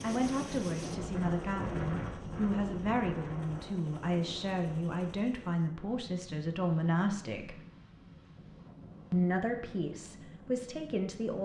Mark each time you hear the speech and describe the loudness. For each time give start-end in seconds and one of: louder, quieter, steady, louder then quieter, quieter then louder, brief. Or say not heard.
0.0-7.6 steady
9.1-11.3 brief.